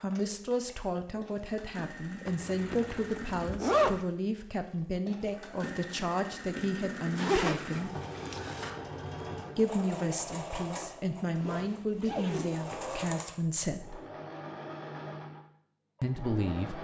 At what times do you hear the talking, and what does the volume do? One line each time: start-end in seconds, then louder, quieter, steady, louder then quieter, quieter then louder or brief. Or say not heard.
0.0-8.0 steady
9.6-14.0 steady
16.0-16.7 brief.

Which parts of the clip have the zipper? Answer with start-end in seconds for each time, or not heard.
2.2-4.0, 7.2-8.7, 11.3-12.9.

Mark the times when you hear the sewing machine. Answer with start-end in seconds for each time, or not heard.
0.0-16.7.